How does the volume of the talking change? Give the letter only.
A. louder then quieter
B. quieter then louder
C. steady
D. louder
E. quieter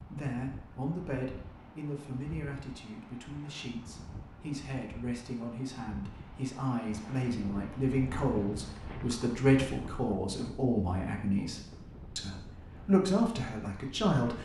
D.